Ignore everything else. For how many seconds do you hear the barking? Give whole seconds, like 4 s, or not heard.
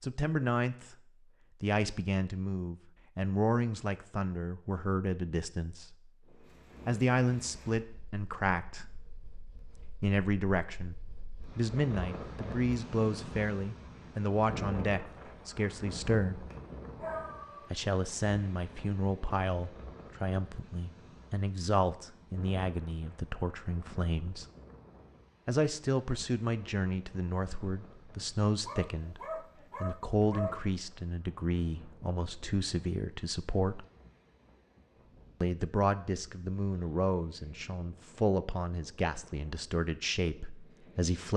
3 s.